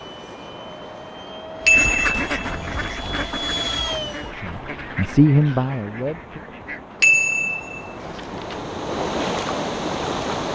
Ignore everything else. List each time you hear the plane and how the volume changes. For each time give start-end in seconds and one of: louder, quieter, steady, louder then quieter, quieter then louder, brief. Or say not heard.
0.0-4.3 louder.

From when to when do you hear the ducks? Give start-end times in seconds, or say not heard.
1.6-7.0.